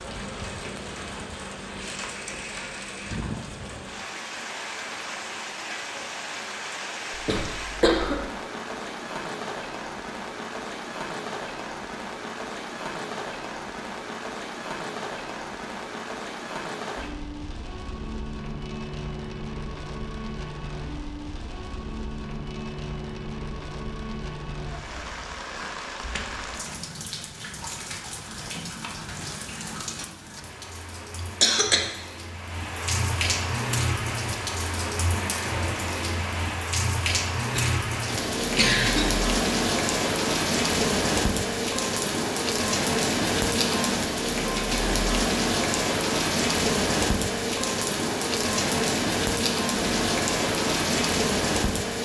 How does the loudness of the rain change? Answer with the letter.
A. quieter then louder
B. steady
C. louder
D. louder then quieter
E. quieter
C.